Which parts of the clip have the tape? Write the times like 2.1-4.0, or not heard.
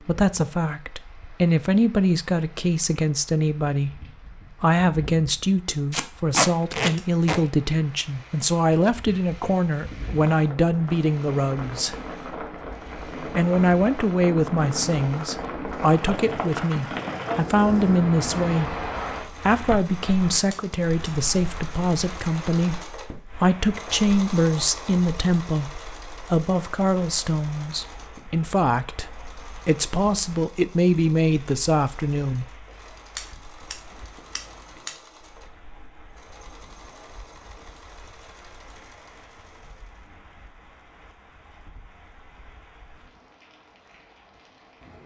5.9-7.4.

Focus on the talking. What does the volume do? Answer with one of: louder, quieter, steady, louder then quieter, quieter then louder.
steady.